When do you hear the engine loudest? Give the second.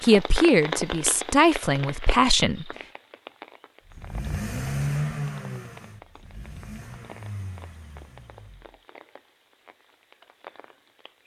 5 s.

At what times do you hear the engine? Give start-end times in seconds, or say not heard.
3.9-8.7.